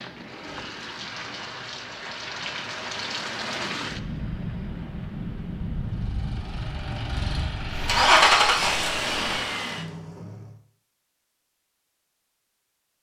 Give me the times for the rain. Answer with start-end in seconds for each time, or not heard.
0.0-9.4.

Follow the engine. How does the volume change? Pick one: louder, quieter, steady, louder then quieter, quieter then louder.
louder then quieter.